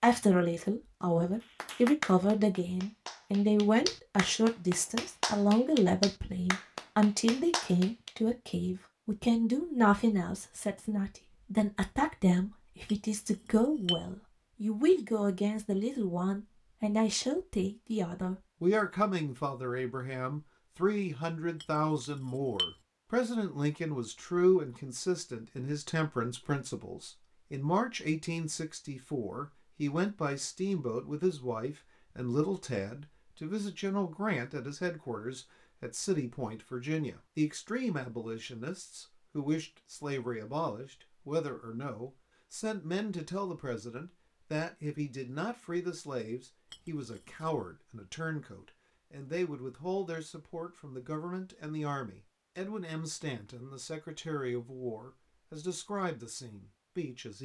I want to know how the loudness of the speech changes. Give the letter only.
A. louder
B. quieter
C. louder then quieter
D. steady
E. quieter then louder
B.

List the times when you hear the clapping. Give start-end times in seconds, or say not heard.
1.4-8.1.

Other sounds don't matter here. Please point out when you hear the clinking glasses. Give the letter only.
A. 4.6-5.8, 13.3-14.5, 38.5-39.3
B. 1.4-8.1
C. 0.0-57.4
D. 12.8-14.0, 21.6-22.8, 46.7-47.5
D.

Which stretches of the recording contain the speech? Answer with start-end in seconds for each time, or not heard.
0.0-57.4.